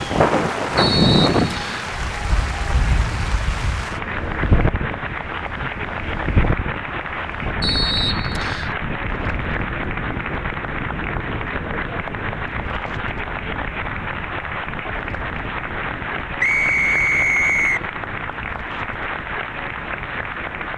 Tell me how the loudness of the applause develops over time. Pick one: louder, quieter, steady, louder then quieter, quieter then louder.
steady.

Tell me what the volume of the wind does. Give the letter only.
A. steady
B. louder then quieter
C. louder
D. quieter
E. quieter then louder
D.